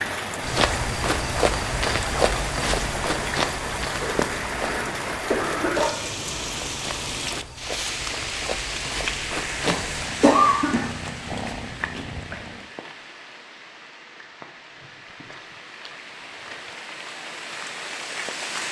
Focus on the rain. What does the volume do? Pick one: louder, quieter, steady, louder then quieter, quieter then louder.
quieter.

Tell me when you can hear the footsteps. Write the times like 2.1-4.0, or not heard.
0.4-10.1.